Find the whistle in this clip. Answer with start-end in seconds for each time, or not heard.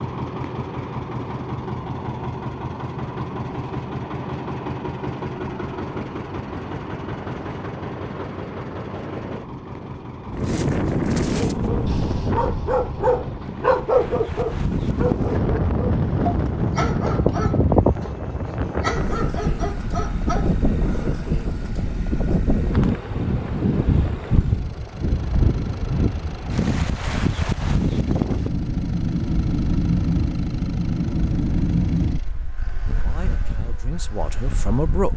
not heard.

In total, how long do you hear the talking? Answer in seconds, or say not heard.
2 s.